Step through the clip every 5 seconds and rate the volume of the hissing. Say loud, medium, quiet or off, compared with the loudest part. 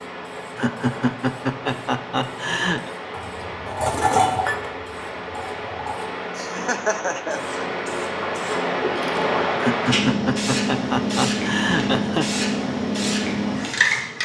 medium, loud, loud.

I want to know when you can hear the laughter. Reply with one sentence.
The laughter can be heard from 0.6 to 2.9 s, from 6.3 to 7.6 s and from 9.6 to 12.2 s.